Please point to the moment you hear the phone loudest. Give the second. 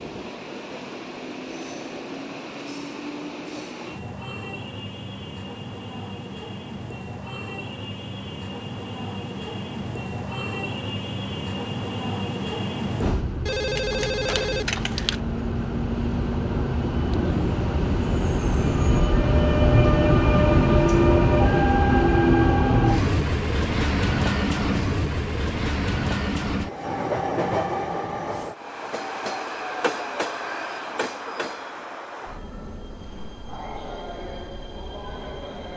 14 s.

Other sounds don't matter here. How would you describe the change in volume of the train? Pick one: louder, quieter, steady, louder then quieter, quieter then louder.
louder then quieter.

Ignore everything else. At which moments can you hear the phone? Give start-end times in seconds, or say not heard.
13.4-15.2.